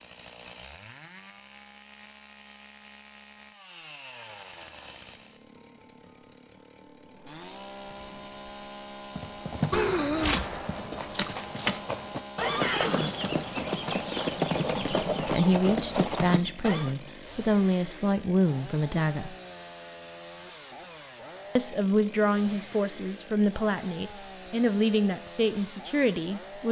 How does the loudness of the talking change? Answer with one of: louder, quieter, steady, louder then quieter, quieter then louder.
steady.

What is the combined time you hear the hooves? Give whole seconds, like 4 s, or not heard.
8 s.